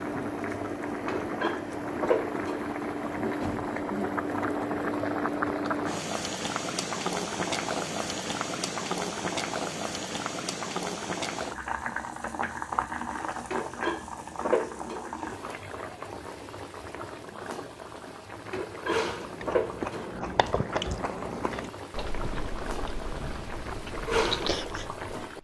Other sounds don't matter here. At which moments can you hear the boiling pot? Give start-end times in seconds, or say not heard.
0.0-25.4.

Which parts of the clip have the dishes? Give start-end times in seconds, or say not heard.
1.1-2.8, 13.5-15.3, 18.5-20.2.